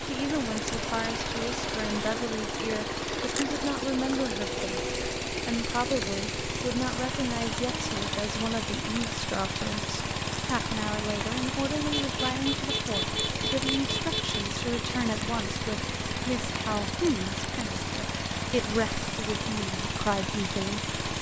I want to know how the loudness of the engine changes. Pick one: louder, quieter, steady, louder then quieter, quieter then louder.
steady.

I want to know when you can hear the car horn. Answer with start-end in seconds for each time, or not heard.
12.0-14.4.